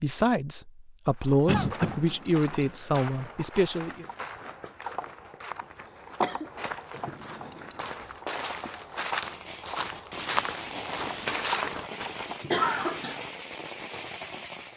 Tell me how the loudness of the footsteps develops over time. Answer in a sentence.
The volume of the footsteps goes up.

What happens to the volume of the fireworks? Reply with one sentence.
The loudness of the fireworks stays about the same.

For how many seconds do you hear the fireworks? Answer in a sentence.
You can hear the fireworks for 6 seconds altogether.